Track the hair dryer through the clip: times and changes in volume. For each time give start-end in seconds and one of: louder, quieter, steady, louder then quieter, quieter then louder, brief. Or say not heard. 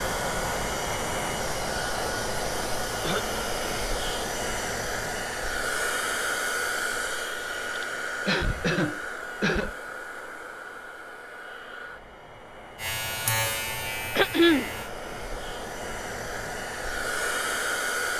0.0-18.1 quieter then louder.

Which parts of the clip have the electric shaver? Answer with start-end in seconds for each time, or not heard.
0.2-1.6, 12.8-14.9.